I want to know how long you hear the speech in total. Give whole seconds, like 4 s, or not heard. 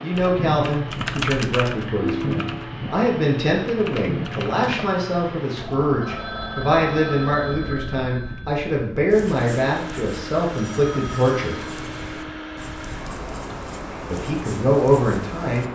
13 s.